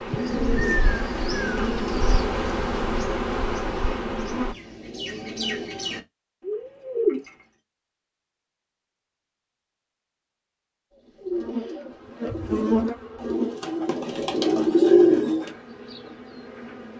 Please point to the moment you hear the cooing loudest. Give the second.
15 s.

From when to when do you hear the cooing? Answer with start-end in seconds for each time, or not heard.
0.1-7.3, 10.9-15.5.